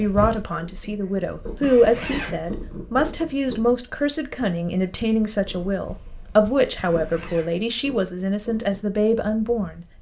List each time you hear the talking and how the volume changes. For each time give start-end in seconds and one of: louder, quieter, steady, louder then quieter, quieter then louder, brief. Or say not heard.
0.0-9.9 steady.